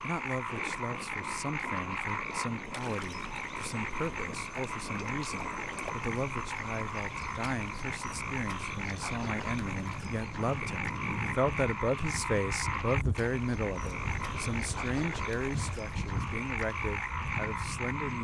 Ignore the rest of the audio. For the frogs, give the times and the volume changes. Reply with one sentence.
The frogs can be heard from 0.0 to 18.2 s, at a steady volume.